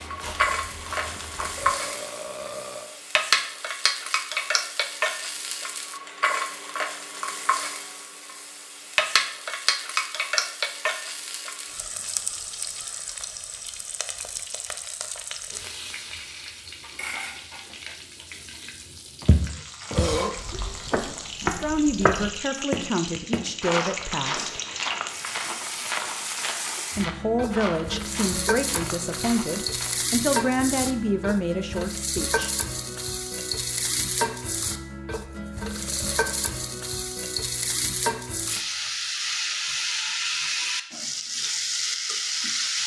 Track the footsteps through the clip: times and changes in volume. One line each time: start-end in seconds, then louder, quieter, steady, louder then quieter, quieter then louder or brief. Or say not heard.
0.0-1.8 brief
19.2-30.1 quieter.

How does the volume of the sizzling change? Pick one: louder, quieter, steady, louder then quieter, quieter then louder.
quieter then louder.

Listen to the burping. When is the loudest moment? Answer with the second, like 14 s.
20 s.